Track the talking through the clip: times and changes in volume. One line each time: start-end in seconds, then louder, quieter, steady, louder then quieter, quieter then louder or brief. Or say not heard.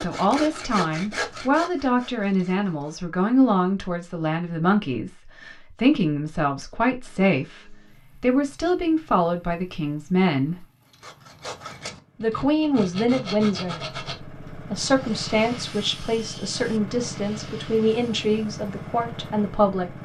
0.0-10.7 steady
12.2-19.9 steady.